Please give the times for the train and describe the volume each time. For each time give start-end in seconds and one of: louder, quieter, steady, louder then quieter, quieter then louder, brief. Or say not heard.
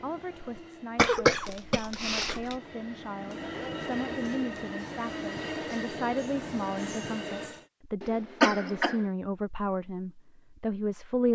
0.0-7.7 louder.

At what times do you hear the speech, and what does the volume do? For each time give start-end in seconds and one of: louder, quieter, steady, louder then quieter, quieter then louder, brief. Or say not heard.
0.0-11.2 louder.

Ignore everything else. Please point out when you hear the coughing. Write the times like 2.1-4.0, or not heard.
0.9-2.5, 8.0-9.0.